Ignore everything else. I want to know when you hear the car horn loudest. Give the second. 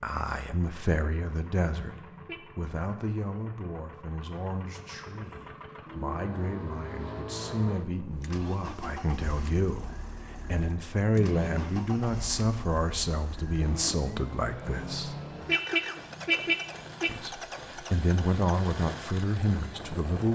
16 s.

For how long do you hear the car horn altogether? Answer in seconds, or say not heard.
4 s.